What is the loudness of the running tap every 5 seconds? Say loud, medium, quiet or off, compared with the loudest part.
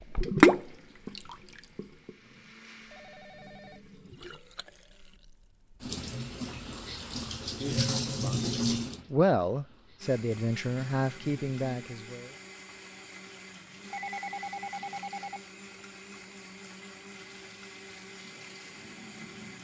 loud, medium, quiet, quiet.